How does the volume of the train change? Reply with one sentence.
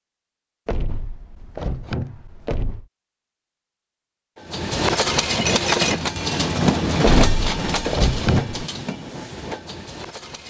The volume of the train goes down.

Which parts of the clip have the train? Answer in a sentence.
The train can be heard from 4.5 to 10.4 s.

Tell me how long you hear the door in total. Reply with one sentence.
You can hear the door for 4 seconds altogether.